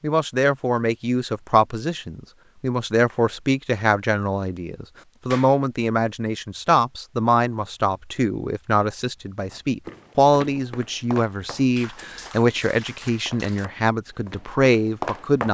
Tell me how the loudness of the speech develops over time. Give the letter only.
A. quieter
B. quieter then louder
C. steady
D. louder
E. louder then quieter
C.